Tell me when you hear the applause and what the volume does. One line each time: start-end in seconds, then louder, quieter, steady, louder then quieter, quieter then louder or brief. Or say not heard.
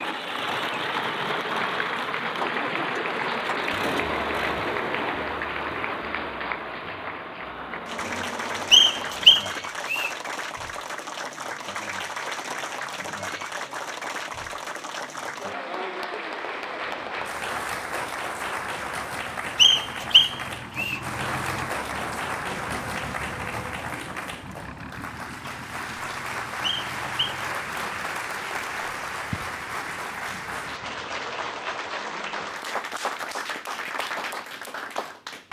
0.1-35.4 steady.